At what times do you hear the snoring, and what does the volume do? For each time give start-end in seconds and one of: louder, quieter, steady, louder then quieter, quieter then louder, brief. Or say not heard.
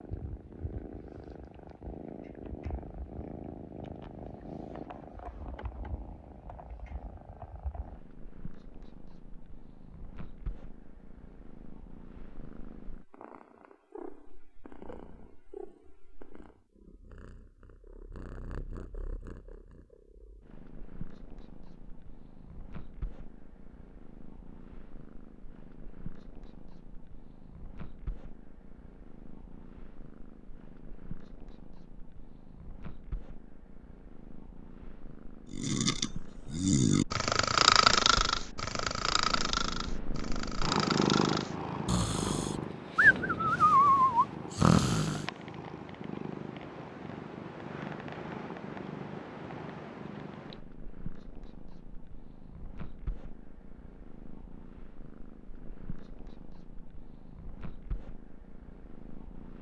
35.5-45.2 quieter then louder.